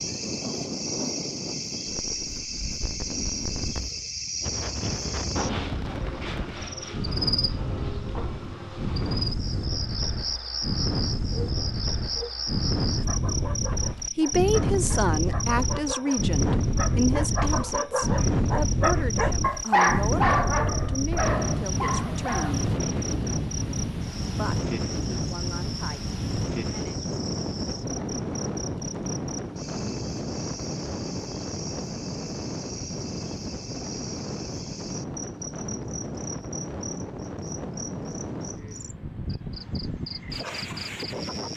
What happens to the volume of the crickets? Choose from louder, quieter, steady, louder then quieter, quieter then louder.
quieter.